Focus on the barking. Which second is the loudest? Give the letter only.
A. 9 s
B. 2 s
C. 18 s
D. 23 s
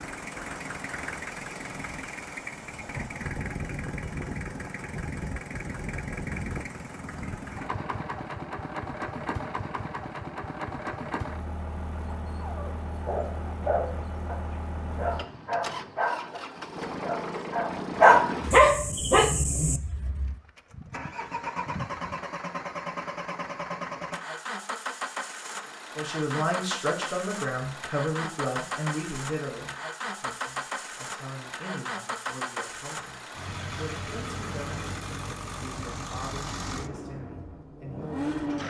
C.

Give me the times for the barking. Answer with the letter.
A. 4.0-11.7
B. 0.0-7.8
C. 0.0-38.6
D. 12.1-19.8
D.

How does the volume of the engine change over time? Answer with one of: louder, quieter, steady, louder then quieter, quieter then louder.
steady.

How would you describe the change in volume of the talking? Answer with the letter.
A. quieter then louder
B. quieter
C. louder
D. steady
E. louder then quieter
B.